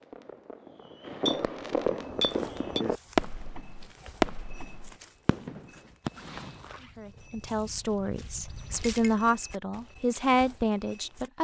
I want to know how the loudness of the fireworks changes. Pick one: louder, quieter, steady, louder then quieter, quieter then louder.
louder then quieter.